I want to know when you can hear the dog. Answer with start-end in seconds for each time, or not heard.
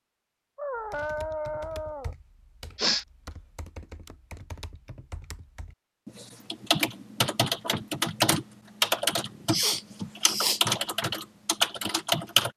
0.6-2.1.